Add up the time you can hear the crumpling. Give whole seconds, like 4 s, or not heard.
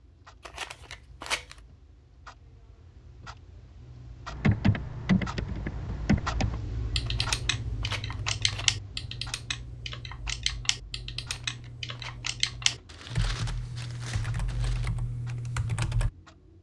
2 s.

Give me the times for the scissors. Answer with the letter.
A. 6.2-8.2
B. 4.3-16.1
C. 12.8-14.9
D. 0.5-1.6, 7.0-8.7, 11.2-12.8
D.